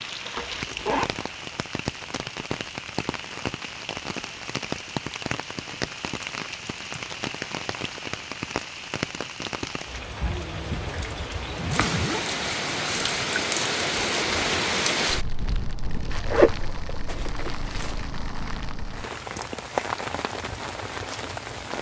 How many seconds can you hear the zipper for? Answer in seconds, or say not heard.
3 s.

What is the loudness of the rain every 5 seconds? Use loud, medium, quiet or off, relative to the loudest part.
medium, medium, loud, medium, medium.